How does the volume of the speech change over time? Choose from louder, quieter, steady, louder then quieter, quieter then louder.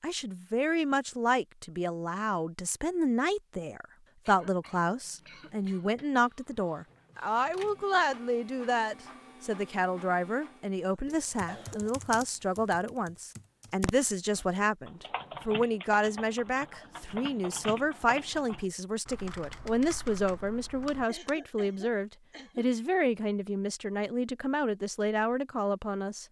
steady.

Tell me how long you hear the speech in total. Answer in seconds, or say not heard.
26 s.